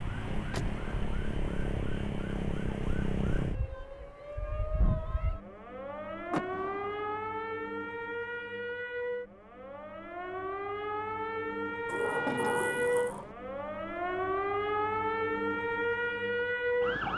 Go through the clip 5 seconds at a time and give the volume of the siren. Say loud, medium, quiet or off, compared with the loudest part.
medium, medium, loud, loud.